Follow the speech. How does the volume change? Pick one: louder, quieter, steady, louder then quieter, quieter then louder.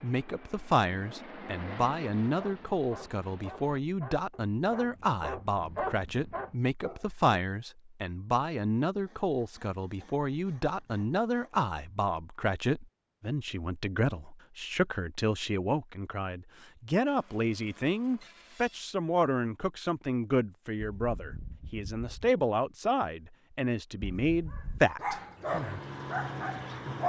steady.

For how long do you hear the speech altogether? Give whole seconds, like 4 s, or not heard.
25 s.